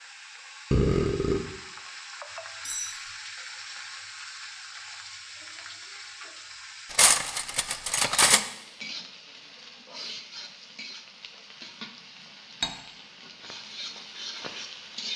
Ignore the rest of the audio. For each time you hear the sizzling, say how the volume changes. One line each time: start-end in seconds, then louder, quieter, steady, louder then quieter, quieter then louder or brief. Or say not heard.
0.0-15.1 steady.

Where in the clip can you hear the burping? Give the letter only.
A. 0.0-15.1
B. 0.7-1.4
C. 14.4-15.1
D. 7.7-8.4
B.